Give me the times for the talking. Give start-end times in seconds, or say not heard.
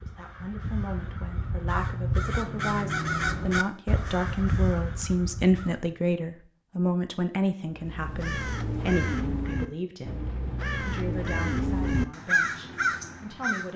0.0-10.2, 10.8-13.7.